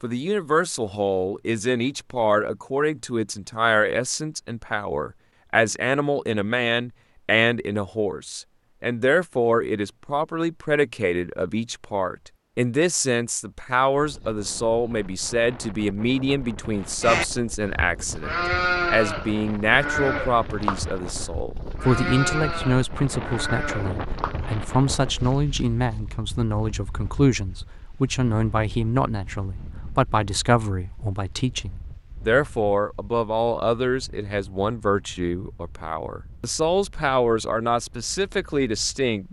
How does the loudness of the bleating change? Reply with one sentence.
The volume of the bleating goes down.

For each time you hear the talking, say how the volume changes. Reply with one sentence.
You can hear the talking from 0.0 to 39.2 s, at a steady volume.